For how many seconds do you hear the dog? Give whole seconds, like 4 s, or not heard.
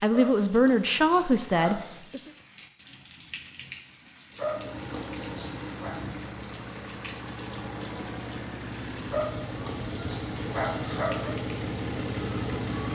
6 s.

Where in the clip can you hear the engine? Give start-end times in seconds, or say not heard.
4.3-12.9.